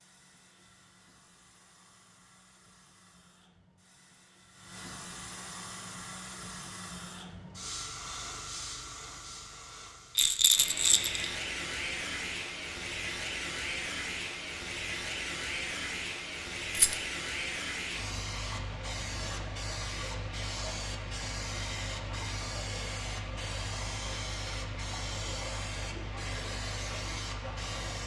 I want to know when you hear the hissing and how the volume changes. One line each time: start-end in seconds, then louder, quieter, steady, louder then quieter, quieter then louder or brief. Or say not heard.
0.0-28.0 louder.